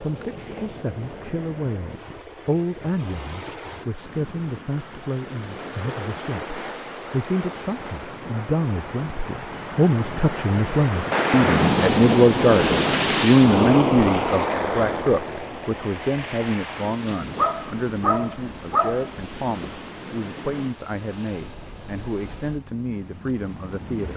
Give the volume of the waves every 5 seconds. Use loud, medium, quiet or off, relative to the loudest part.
quiet, quiet, loud, quiet, quiet.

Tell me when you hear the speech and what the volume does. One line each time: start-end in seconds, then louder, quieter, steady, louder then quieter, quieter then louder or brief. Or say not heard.
0.0-24.1 louder then quieter.